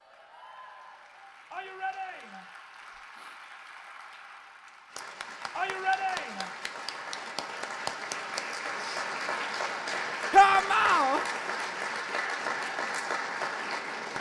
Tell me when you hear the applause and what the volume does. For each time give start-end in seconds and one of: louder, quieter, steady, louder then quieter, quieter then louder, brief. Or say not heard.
0.0-14.1 louder.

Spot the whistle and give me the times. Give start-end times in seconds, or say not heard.
not heard.